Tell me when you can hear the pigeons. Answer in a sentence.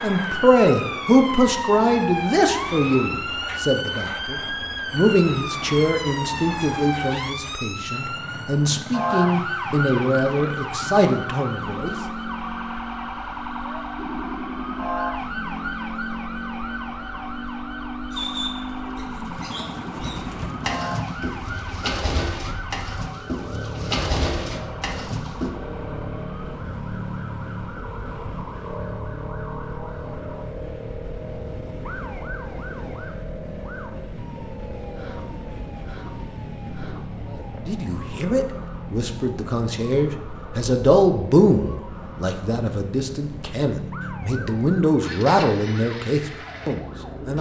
The pigeons can be heard from 18.1 to 25.5 s.